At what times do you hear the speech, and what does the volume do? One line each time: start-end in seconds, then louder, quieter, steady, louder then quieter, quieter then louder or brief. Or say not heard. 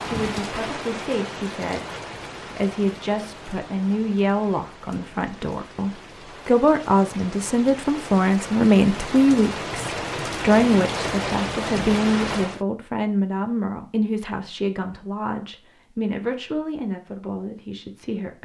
0.0-18.4 louder then quieter.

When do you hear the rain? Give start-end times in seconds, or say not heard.
0.0-12.7.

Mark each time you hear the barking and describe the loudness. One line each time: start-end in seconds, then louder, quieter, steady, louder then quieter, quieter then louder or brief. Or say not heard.
not heard.